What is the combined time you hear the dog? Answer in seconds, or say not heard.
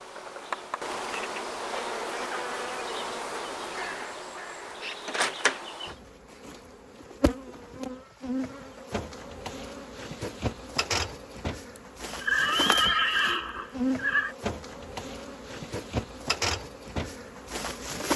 not heard.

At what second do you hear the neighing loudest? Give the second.
13 s.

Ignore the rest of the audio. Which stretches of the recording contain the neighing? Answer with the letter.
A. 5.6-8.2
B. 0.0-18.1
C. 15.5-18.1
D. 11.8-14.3
D.